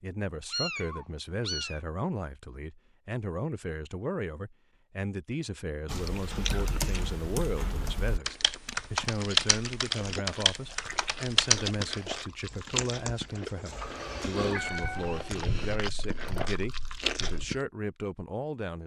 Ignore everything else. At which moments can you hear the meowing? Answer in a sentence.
You can hear the meowing from 0.5 to 1.8 s and from 13.7 to 15.3 s.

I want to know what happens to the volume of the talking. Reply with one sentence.
The volume of the talking stays about the same.